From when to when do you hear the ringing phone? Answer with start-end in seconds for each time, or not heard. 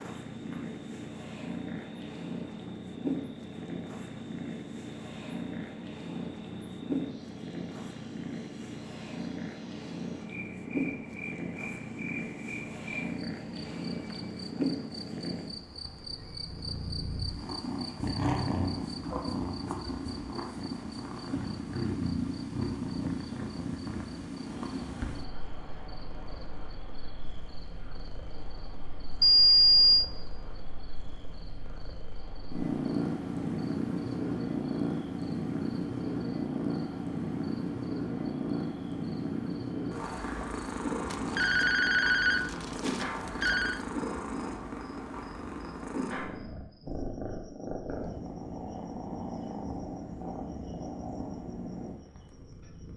13.9-14.8, 29.2-30.1, 41.1-43.8.